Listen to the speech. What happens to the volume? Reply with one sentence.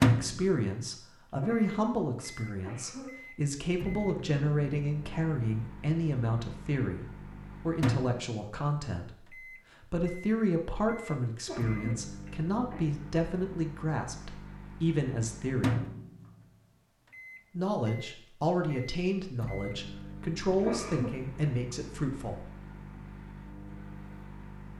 The loudness of the speech stays about the same.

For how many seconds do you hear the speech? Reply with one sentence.
You can hear the speech for 21 seconds altogether.